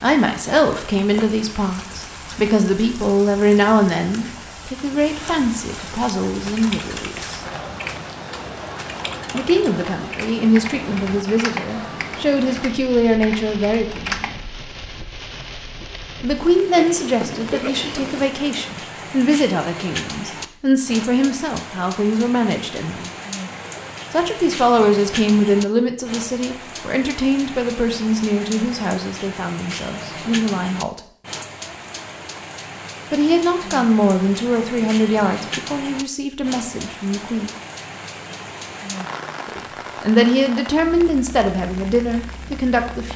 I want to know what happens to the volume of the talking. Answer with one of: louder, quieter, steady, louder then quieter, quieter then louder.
steady.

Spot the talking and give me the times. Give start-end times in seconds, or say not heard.
0.0-7.4, 9.3-14.3, 16.2-23.1, 24.1-31.0, 33.1-37.5, 39.5-43.1.